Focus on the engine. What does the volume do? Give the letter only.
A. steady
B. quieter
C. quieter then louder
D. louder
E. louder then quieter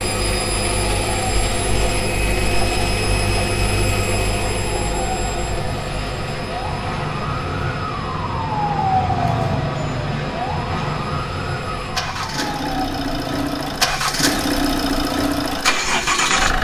C.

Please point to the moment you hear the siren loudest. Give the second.
9 s.